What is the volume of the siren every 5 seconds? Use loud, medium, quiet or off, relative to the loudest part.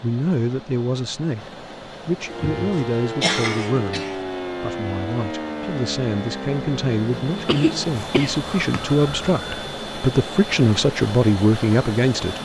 loud, loud, off.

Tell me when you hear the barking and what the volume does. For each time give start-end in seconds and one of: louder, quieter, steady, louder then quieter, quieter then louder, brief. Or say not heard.
not heard.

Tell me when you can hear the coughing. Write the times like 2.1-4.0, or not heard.
2.3-4.2, 7.5-8.8.